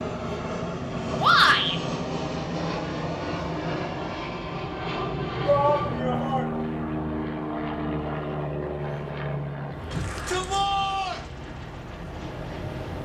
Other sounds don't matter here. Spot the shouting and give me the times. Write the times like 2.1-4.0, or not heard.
1.2-1.8, 5.5-6.5, 9.9-11.2.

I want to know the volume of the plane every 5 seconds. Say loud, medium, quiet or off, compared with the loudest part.
loud, loud, medium.